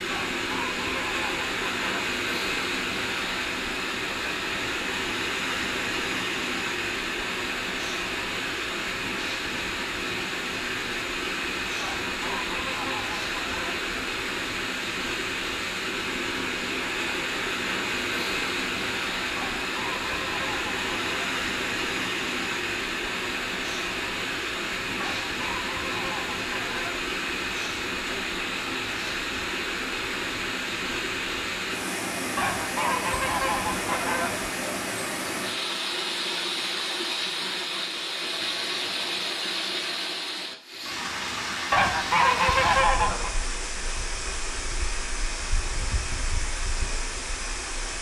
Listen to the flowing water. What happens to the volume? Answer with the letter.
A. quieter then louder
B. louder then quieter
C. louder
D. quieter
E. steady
E.